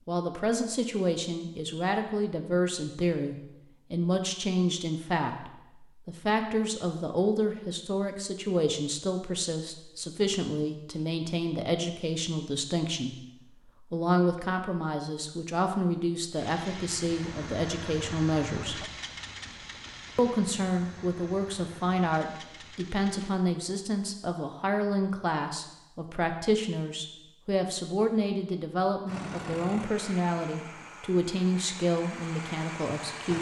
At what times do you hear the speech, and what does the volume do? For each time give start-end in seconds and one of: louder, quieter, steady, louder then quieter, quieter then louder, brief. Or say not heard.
0.1-18.8 steady
20.1-33.3 steady.